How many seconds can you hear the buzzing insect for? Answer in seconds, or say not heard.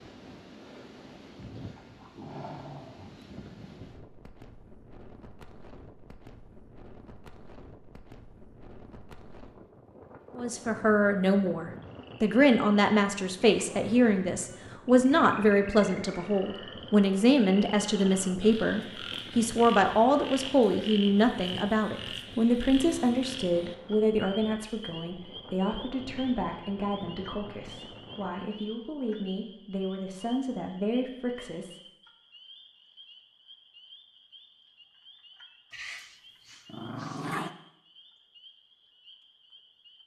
not heard.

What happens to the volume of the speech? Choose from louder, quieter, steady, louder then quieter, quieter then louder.
quieter.